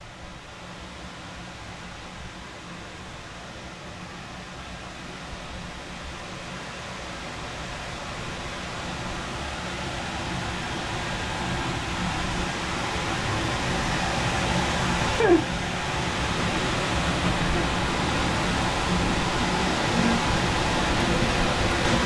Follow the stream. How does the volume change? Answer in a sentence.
The volume of the stream goes up.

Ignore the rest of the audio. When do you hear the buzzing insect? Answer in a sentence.
The buzzing insect can be heard from 19.4 to 22.0 s.